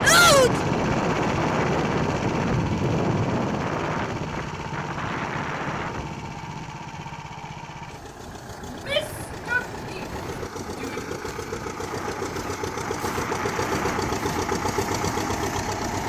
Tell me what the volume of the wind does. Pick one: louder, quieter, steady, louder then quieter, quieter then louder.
quieter then louder.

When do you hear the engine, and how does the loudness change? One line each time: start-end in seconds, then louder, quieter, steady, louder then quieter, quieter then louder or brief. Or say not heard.
0.0-16.0 quieter then louder.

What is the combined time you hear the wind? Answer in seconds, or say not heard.
16 s.